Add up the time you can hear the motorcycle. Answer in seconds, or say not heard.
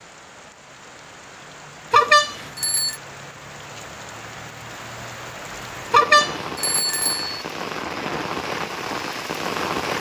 not heard.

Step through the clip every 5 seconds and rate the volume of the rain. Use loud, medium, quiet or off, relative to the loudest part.
medium, loud.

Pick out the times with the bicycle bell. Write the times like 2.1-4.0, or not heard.
1.9-3.0, 5.9-7.4.